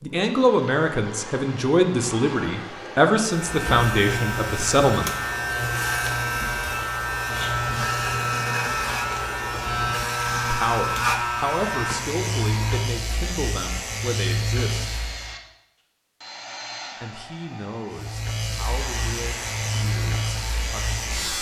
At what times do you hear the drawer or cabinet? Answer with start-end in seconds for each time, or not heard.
not heard.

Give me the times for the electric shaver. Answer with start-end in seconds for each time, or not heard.
3.2-15.3, 17.9-21.3.